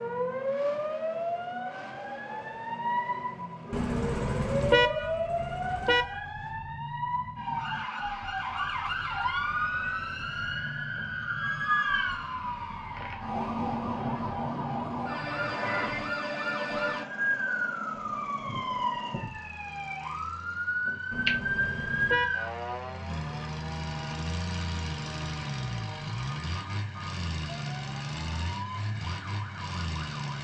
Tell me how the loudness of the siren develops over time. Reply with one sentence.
The loudness of the siren goes down.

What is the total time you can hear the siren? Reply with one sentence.
The siren can be heard for 30 seconds in total.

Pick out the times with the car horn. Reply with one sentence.
You can hear the car horn from 3.7 to 6.2 s and from 21.1 to 22.6 s.